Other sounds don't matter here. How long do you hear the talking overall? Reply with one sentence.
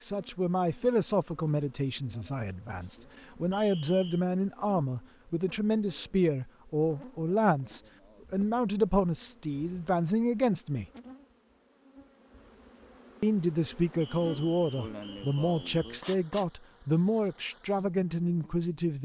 The talking can be heard for 17 seconds in total.